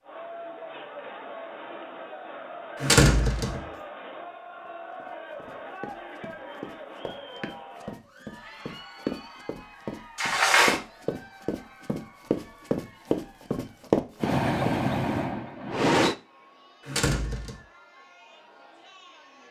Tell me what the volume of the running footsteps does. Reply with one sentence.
The loudness of the running footsteps goes up.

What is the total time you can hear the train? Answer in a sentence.
You can hear the train for 2 seconds altogether.